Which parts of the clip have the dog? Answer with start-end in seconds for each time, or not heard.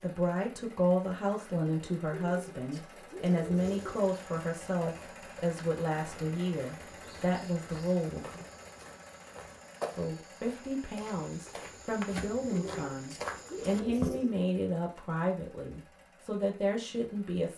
not heard.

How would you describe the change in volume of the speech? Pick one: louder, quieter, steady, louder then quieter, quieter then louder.
steady.